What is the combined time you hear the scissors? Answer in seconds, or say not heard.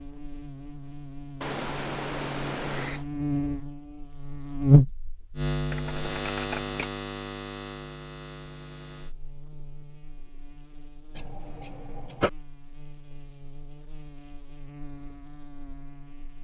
4 s.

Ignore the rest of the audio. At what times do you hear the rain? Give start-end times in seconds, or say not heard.
not heard.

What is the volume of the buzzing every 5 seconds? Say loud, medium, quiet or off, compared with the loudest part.
loud, medium, quiet, quiet.